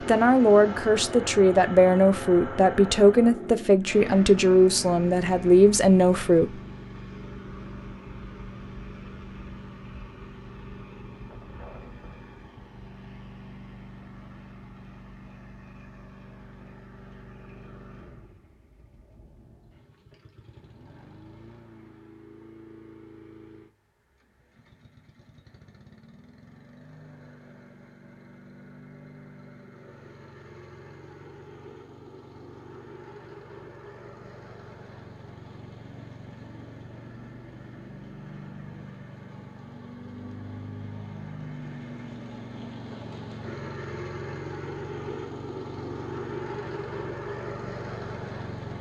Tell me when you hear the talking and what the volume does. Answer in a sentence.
You can hear the talking from 0.0 to 6.6 s, at a steady volume.